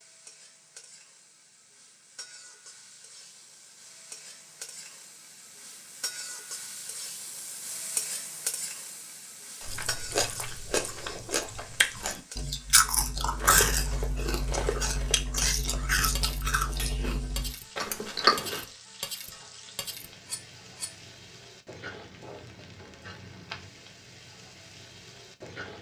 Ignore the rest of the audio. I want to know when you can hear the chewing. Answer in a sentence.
The chewing can be heard from 9.6 to 18.6 s.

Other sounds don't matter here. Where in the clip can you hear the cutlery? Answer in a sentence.
The cutlery can be heard from 13.3 to 20.9 s.